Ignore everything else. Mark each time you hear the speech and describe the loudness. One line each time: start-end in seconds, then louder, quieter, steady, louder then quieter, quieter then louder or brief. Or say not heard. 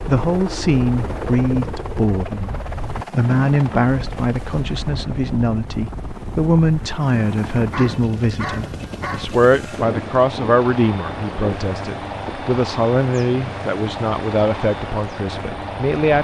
0.1-16.1 steady.